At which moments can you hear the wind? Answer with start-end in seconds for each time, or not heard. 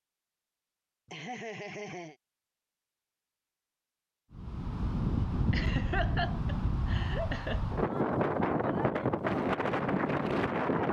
4.3-10.8.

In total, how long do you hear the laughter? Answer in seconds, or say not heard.
3 s.